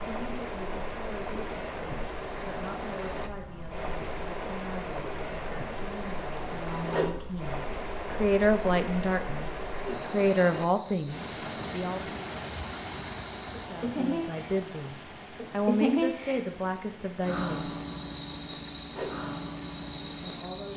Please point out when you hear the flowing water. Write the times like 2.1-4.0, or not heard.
0.0-20.7.